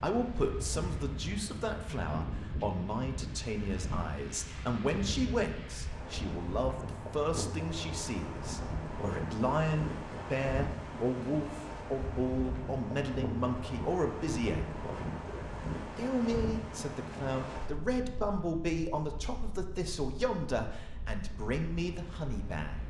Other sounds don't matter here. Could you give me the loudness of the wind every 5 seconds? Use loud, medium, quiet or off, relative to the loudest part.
loud, loud, loud, loud, medium.